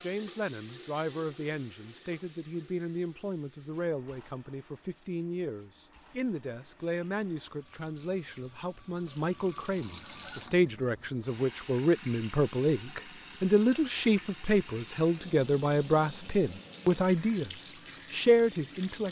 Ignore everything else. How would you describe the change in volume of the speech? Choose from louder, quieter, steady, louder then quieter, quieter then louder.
louder.